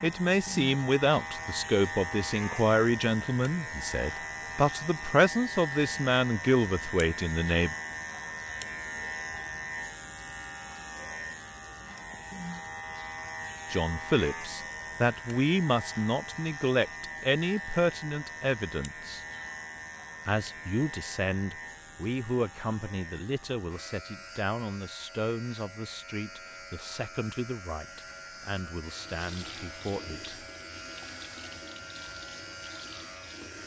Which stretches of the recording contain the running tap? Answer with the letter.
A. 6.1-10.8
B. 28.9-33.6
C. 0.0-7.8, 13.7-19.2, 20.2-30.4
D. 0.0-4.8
B.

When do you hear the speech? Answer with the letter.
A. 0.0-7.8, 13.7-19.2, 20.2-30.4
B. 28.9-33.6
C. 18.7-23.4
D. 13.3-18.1
A.